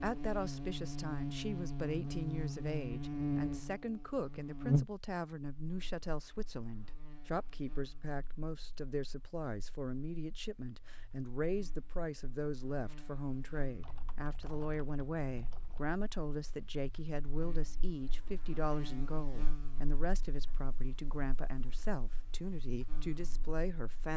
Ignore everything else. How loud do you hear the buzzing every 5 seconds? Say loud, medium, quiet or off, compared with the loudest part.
loud, quiet, quiet, quiet, quiet.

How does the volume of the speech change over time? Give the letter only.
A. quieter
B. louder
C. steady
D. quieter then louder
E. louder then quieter
C.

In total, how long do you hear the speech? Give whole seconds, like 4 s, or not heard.
24 s.